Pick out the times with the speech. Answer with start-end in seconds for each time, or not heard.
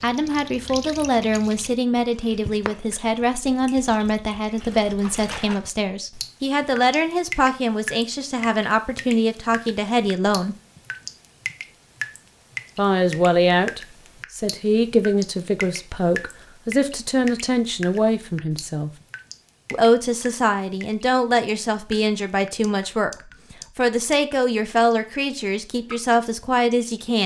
0.0-10.6, 12.8-18.9, 19.7-27.2.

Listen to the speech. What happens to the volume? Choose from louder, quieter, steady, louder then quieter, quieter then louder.
steady.